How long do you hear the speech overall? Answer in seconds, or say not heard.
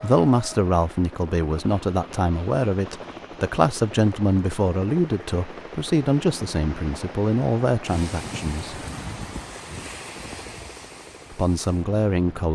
10 s.